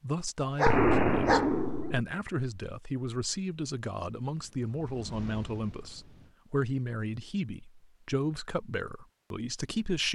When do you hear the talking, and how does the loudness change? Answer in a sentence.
The talking can be heard from 0.0 to 10.1 s, at a steady volume.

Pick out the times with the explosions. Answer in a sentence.
The explosions can be heard from 0.7 to 2.0 s.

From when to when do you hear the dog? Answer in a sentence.
You can hear the dog from 0.5 to 1.8 s.